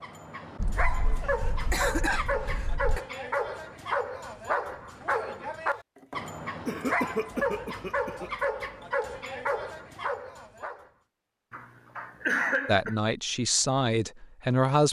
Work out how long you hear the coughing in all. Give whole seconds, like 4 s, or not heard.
6 s.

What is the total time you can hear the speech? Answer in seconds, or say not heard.
2 s.